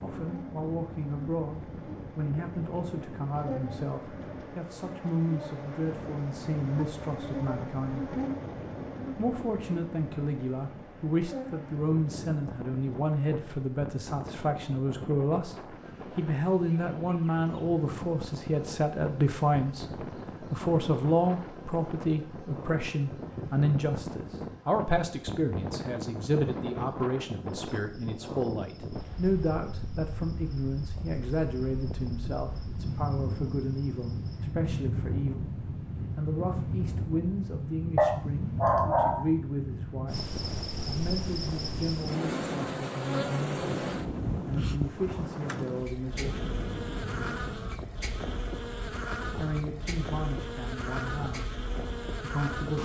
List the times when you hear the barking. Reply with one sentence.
You can hear the barking from 38.0 to 39.3 s.